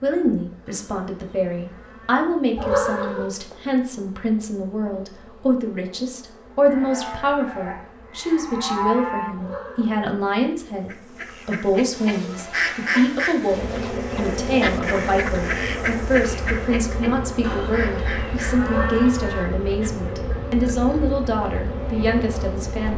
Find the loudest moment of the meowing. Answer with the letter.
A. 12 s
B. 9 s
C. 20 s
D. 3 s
D.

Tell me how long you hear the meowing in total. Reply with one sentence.
You can hear the meowing for 2 seconds altogether.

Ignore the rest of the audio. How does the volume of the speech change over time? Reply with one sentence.
The loudness of the speech stays about the same.